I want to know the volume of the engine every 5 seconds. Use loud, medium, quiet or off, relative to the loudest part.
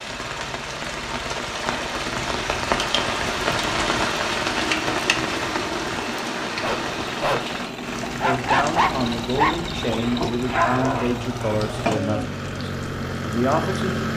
medium, loud, loud.